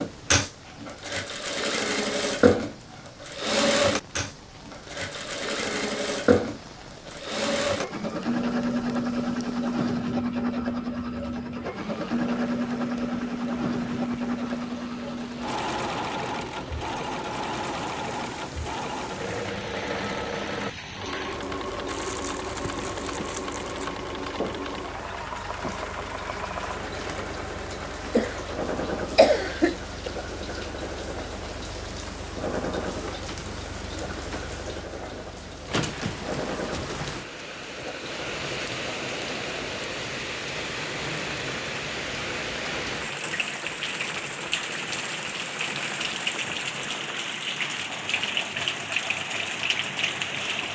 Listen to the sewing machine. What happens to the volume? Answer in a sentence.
The volume of the sewing machine goes down.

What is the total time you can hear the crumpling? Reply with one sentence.
The crumpling can be heard for 2 seconds in total.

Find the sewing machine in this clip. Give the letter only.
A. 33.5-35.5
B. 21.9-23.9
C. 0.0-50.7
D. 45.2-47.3
C.